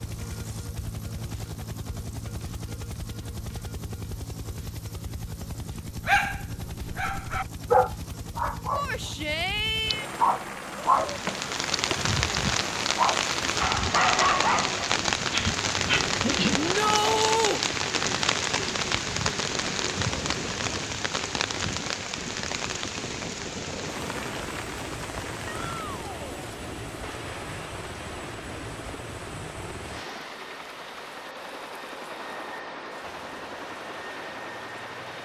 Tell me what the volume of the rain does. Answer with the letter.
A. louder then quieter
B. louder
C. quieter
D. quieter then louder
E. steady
C.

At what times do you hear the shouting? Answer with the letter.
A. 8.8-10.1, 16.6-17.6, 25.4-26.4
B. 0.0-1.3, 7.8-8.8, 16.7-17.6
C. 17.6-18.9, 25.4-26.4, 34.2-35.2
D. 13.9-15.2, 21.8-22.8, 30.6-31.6
A.